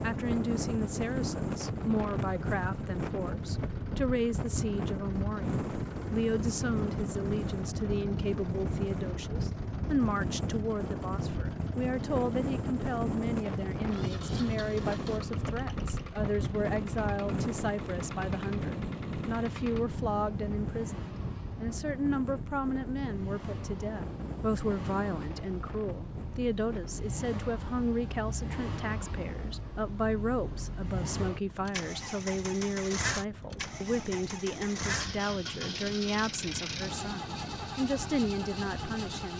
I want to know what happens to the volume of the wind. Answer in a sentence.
The volume of the wind goes down.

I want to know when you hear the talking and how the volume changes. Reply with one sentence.
The talking can be heard from 0.0 to 39.3 s, at a steady volume.